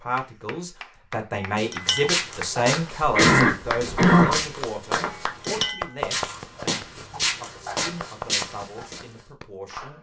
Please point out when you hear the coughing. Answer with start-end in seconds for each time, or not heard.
3.0-4.5.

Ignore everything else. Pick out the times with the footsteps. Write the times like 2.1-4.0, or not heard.
1.6-9.1.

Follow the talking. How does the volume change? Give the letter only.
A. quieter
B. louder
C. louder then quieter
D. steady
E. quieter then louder
A.